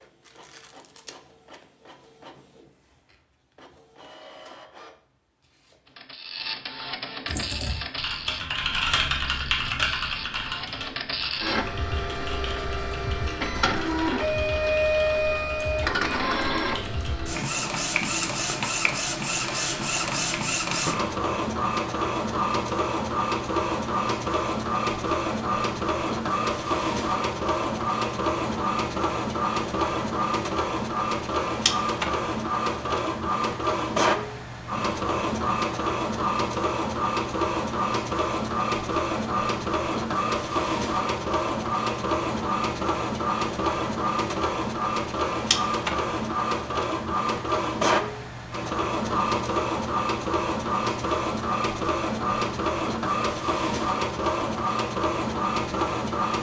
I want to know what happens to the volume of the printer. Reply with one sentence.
The volume of the printer goes up.